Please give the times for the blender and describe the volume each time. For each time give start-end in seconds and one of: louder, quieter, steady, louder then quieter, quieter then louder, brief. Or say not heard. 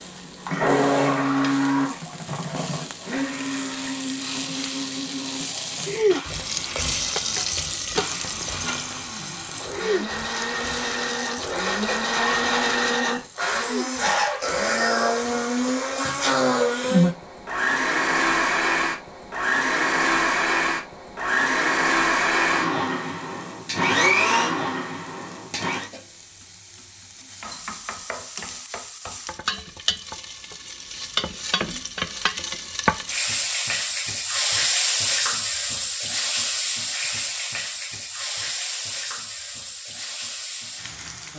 0.0-25.9 quieter then louder.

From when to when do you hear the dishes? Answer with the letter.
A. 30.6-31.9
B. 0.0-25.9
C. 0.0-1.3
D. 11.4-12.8
D.